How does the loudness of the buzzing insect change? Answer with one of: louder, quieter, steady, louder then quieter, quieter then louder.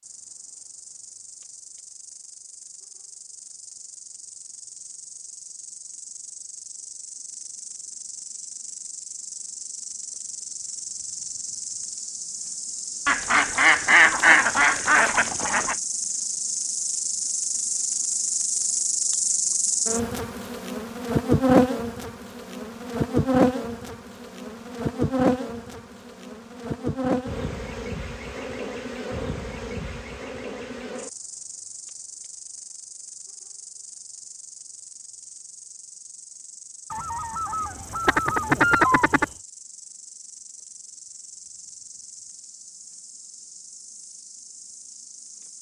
louder then quieter.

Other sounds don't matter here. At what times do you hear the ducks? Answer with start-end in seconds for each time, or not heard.
13.1-15.8, 36.9-39.2.